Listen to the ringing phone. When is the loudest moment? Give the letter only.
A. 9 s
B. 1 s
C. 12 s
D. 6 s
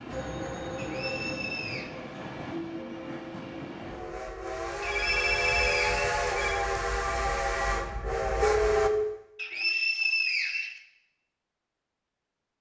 A.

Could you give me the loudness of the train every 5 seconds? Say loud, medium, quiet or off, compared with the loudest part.
medium, loud, off.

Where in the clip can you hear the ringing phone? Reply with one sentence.
The ringing phone can be heard from 0.1 to 1.9 s, from 4.8 to 6.7 s and from 8.4 to 9.2 s.